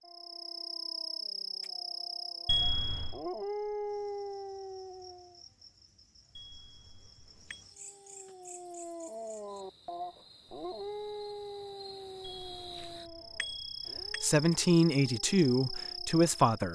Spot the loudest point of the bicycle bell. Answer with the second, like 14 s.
3 s.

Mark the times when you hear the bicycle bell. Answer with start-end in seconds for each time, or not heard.
2.5-3.2, 6.3-7.6, 12.2-14.2.